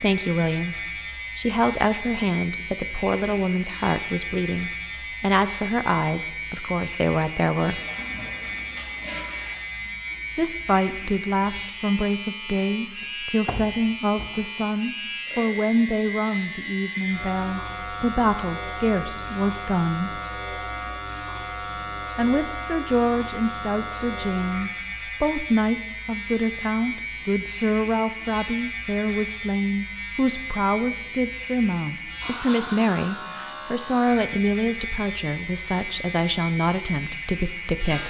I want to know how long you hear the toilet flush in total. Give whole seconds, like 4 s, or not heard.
2 s.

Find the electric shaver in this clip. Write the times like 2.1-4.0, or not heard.
0.0-38.0.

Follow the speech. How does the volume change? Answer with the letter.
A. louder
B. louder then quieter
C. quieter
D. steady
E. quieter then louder
D.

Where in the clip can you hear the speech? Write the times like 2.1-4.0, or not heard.
0.0-7.8, 10.3-20.2, 22.1-38.0.